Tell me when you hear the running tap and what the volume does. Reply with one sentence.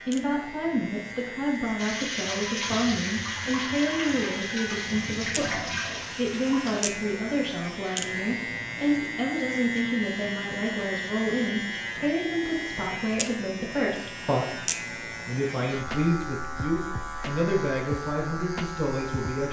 The running tap can be heard from 1.8 to 6.9 s, at a steady volume.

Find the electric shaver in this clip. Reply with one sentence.
You can hear the electric shaver from 0.0 to 19.4 s.